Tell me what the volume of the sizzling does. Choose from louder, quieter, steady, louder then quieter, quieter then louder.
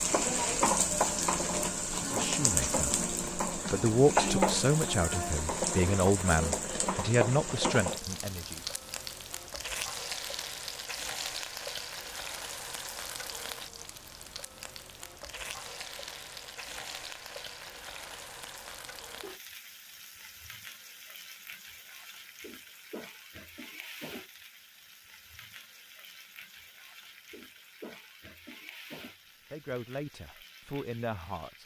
quieter.